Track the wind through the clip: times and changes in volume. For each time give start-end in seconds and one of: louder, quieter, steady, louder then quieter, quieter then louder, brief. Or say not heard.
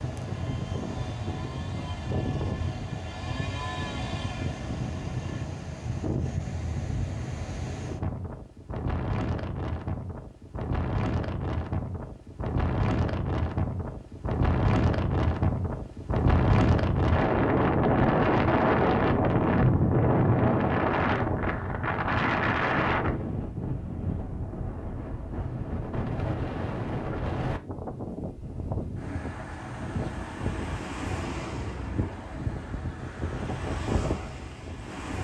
0.0-35.1 louder then quieter.